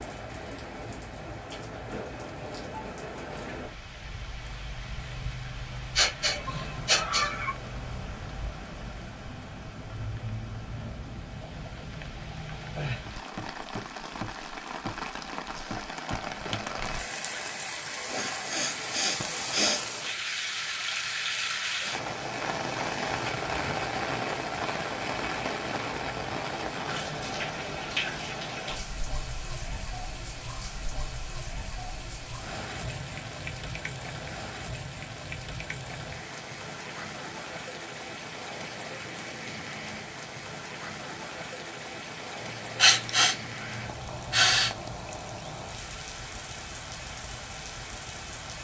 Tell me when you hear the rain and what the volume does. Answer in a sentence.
You can hear the rain from 0.0 to 48.5 s, getting louder then quieter.